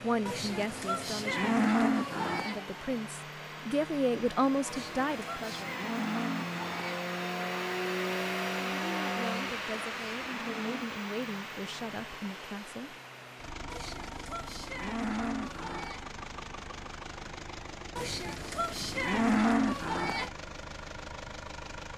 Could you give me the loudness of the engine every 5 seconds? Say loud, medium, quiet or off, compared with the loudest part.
medium, loud, medium, medium, medium.